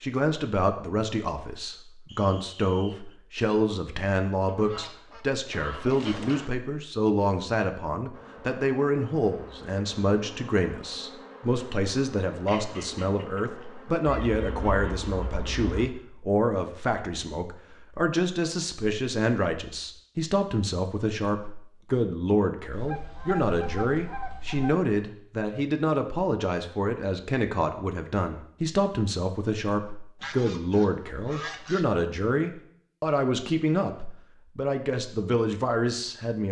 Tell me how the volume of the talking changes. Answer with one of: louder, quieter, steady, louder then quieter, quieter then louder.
steady.